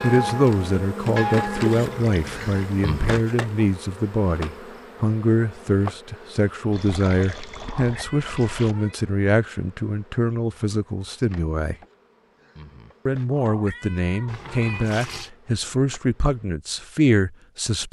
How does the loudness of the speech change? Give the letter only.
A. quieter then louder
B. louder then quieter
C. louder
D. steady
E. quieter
D.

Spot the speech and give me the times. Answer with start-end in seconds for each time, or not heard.
0.0-11.8, 13.1-17.8.